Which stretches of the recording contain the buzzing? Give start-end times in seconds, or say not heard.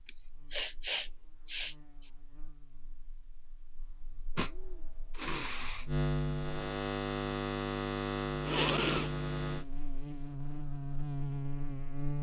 0.0-12.1.